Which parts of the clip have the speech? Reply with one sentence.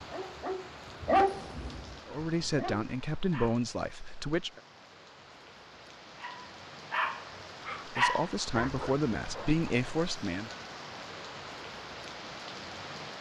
You can hear the speech from 2.0 to 4.6 s and from 7.8 to 10.5 s.